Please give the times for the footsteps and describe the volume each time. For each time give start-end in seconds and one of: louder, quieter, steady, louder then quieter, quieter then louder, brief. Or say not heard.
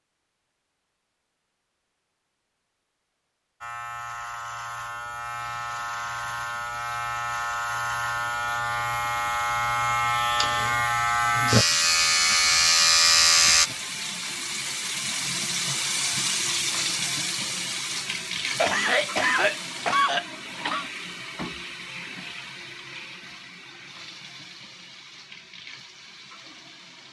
not heard.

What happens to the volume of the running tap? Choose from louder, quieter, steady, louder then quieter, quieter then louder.
louder then quieter.